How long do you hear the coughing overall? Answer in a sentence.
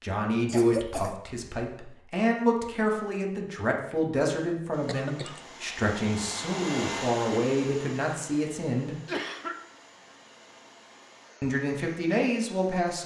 You can hear the coughing for 2 seconds altogether.